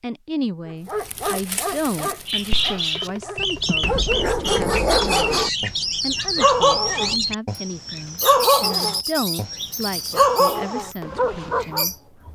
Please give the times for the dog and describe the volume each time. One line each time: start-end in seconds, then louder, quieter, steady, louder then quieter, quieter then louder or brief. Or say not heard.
0.8-11.8 louder.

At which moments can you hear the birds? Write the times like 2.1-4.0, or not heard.
2.2-12.3.